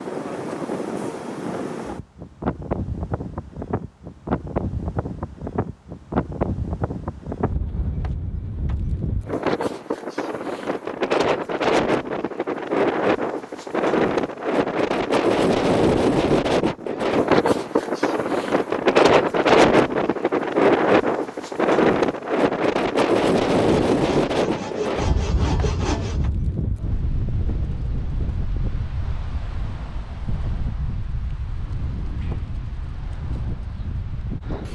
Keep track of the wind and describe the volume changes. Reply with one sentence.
The loudness of the wind goes up, then down.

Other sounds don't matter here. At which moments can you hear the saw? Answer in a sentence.
You can hear the saw from 23.6 to 26.3 s.